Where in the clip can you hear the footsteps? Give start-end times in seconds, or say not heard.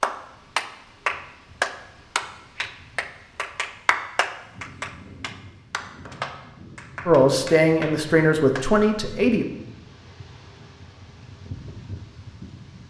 not heard.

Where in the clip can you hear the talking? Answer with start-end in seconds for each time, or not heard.
7.0-9.4.